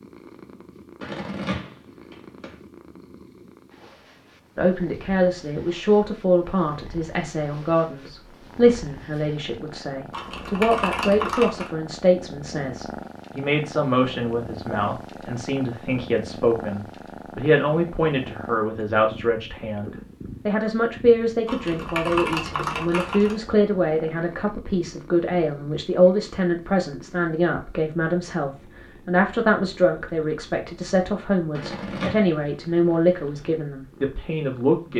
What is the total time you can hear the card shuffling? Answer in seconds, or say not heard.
2 s.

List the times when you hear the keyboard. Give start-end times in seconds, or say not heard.
10.1-11.7, 21.4-23.4.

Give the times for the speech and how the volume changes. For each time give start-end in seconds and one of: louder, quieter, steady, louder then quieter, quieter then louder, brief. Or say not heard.
4.5-34.9 steady.